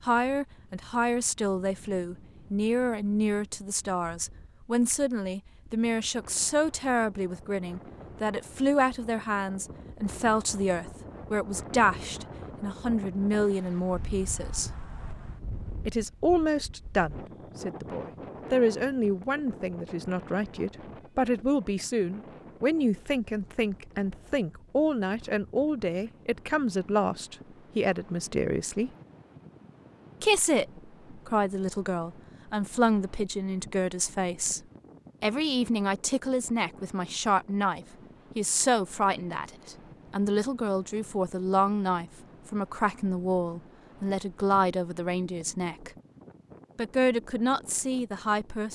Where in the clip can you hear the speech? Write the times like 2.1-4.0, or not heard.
0.1-14.7, 15.8-28.9, 30.2-34.6, 35.2-45.9, 46.8-48.6.